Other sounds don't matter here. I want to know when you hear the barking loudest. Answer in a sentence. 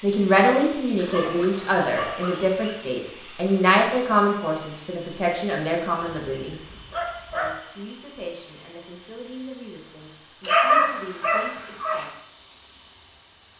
The loudest moment of the barking is at 11 seconds.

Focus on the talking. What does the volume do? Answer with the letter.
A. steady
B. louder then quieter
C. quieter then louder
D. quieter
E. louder
D.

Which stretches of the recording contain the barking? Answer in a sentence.
You can hear the barking from 0.9 to 2.8 s, from 6.0 to 7.5 s and from 10.4 to 12.1 s.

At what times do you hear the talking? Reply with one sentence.
You can hear the talking from 0.0 to 6.6 s and from 7.3 to 12.1 s.